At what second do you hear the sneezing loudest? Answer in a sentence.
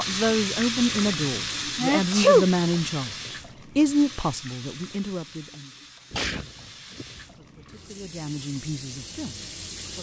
The volume of the sneezing peaks at 2 seconds.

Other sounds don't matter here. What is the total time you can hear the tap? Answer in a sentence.
The tap can be heard for 10 seconds in total.